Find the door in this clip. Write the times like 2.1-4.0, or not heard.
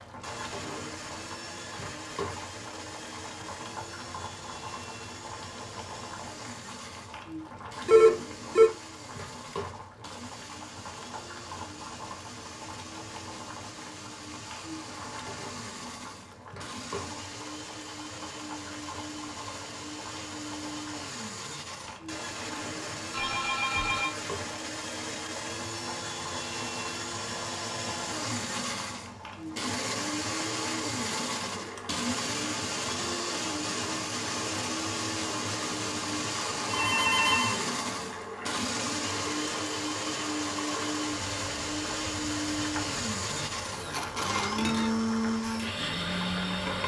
not heard.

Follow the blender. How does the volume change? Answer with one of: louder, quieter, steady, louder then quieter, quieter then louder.
louder.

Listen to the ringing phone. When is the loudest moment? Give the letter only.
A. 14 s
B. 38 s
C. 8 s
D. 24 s
C.